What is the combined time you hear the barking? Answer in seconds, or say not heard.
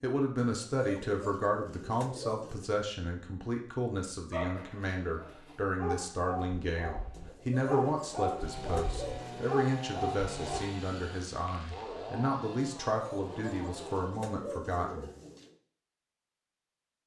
6 s.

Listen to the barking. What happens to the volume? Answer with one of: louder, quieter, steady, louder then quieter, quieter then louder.
louder.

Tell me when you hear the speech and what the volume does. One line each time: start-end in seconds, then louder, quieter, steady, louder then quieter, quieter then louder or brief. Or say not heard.
0.0-15.1 steady.